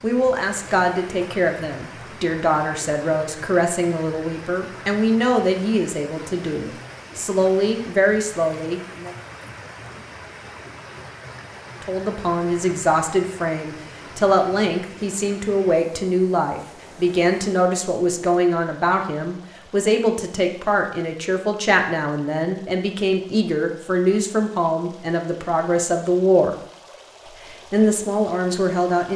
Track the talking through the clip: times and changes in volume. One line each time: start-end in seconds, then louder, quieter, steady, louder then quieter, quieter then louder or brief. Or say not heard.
0.0-9.2 steady
11.8-26.6 steady
27.5-29.1 brief.